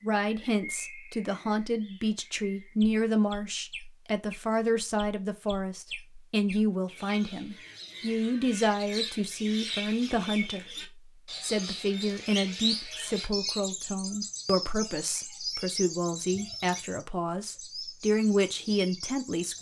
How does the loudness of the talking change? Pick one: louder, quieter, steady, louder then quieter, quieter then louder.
steady.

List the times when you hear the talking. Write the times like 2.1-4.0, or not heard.
0.0-19.5.